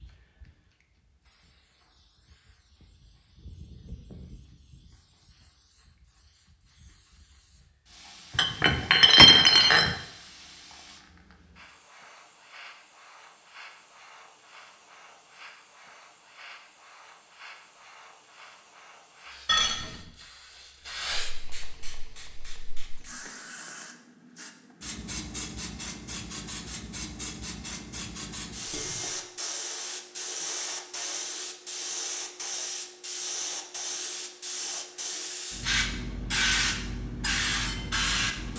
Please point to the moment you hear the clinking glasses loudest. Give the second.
9 s.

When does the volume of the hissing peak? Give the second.
36 s.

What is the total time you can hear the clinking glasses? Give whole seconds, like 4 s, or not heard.
3 s.